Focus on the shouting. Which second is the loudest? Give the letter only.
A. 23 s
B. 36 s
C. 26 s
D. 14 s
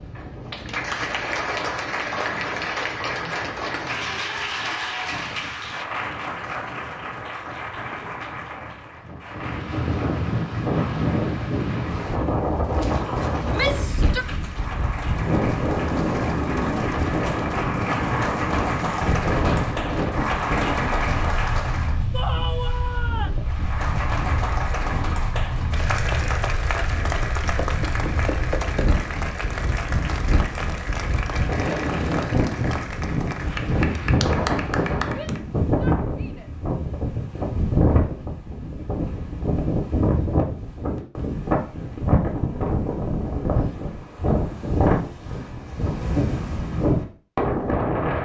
D.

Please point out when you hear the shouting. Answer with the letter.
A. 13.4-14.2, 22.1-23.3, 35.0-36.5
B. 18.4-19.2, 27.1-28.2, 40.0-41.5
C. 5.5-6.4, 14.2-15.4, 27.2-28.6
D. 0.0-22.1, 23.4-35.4
A.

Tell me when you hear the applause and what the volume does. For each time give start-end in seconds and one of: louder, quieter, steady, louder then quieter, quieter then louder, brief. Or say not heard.
0.0-22.1 quieter then louder
23.4-35.4 steady.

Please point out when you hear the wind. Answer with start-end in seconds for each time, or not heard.
0.0-48.2.